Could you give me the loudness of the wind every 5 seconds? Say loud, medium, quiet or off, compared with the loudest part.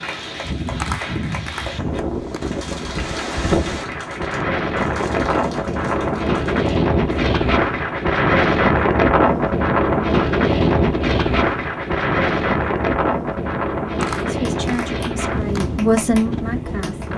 medium, loud, loud, medium.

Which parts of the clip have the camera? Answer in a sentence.
The camera can be heard from 0.8 to 2.4 s and from 14.0 to 15.7 s.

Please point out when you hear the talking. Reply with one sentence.
The talking can be heard from 14.2 to 17.1 s.